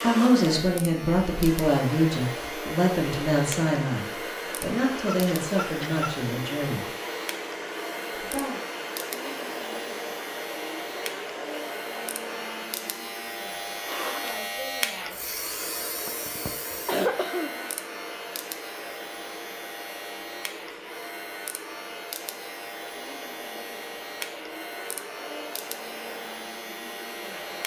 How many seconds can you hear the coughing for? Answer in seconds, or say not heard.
3 s.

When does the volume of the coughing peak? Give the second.
17 s.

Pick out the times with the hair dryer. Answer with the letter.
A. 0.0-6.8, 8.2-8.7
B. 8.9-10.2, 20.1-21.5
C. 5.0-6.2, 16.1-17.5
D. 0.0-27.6
D.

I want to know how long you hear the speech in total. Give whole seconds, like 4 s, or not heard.
7 s.